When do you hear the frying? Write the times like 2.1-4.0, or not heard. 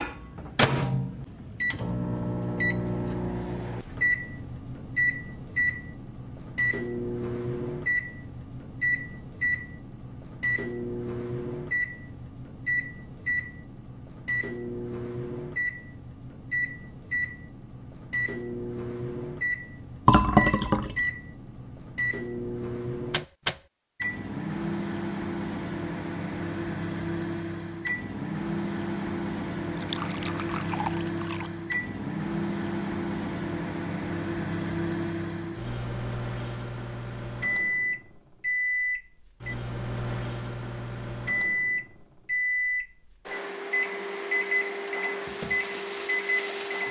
45.1-46.8.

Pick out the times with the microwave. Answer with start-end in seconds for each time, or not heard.
0.0-46.8.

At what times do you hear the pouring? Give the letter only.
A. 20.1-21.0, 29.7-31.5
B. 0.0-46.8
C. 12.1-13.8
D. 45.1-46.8
A.